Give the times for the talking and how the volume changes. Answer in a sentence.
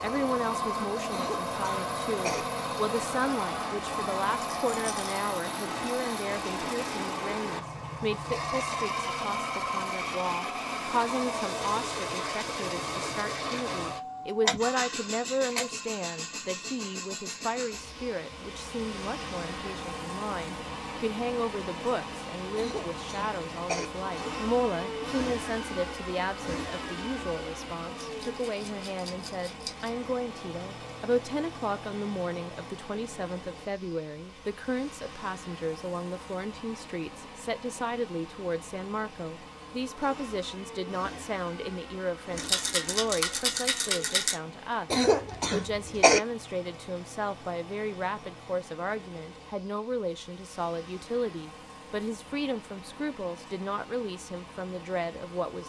You can hear the talking from 0.0 to 55.6 s, at a steady volume.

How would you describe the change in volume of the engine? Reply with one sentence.
The loudness of the engine goes down.